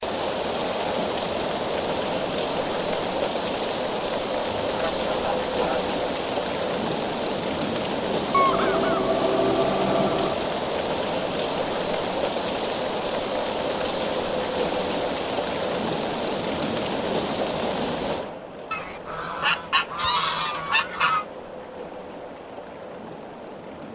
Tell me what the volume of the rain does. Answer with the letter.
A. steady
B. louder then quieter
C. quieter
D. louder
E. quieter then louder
C.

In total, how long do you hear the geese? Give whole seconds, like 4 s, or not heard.
6 s.